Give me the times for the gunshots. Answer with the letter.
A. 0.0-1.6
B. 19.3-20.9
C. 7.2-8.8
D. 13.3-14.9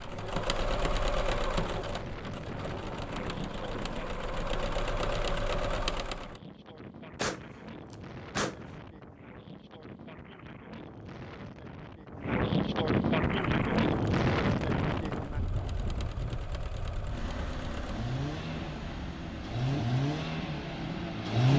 C.